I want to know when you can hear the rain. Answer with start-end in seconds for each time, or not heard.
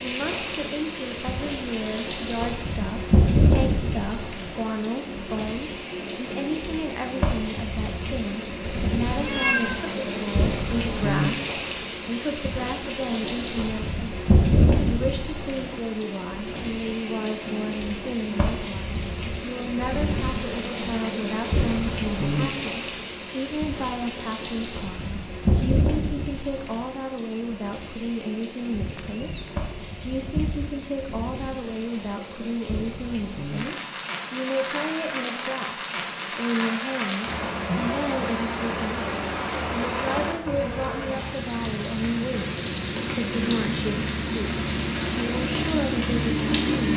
0.0-46.9.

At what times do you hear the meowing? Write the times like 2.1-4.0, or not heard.
9.2-9.8, 28.7-30.7.